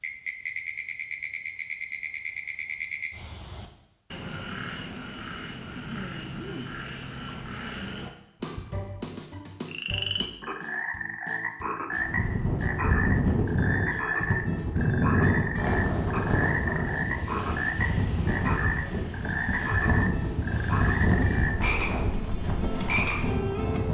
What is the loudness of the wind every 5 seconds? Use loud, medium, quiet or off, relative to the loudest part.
off, off, loud, loud, loud.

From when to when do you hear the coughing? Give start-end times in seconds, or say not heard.
not heard.